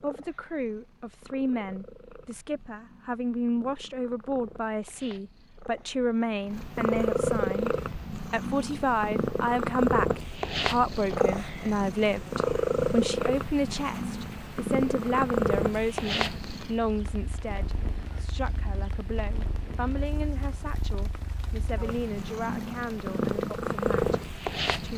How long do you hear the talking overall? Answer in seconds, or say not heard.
25 s.